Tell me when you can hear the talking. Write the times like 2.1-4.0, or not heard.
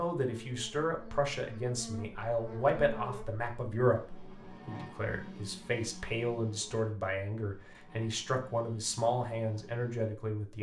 0.0-10.5.